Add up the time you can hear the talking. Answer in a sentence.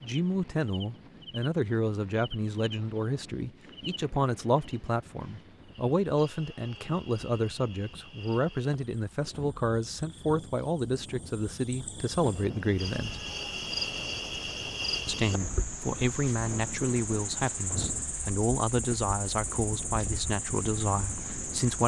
You can hear the talking for 20 seconds altogether.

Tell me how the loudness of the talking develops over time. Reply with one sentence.
The loudness of the talking stays about the same.